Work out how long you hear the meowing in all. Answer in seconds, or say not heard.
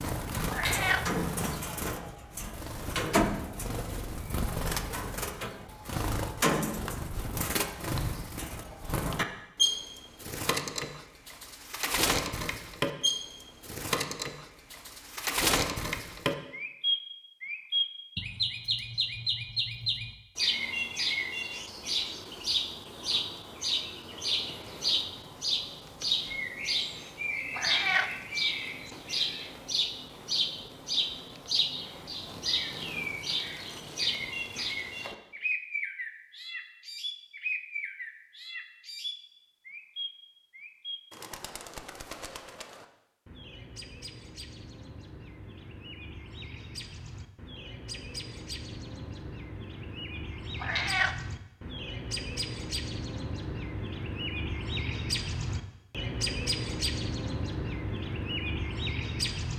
2 s.